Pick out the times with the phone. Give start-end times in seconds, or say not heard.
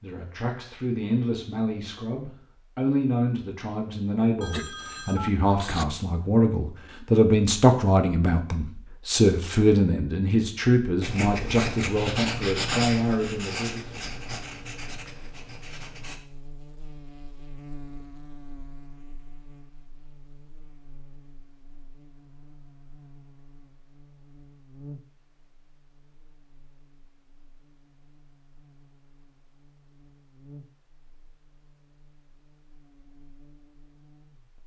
4.4-5.8.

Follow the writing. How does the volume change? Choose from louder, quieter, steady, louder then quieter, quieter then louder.
quieter.